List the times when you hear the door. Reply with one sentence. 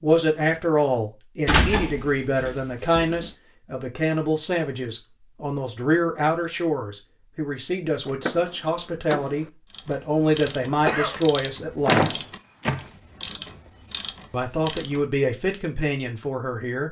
The door can be heard from 1.4 to 3.3 s, from 8.1 to 9.5 s and from 11.8 to 12.8 s.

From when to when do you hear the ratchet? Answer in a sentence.
You can hear the ratchet from 9.7 to 15.0 s.